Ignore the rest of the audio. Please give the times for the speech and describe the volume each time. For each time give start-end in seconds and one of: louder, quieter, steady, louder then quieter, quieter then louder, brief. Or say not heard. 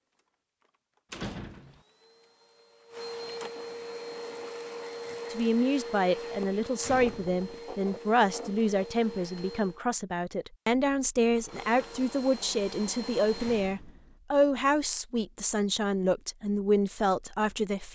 5.3-17.9 steady.